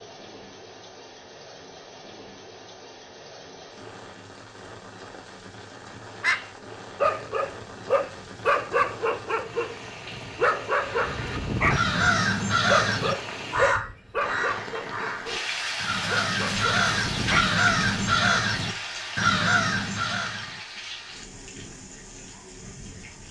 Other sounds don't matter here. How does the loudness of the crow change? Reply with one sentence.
The volume of the crow goes down, then up.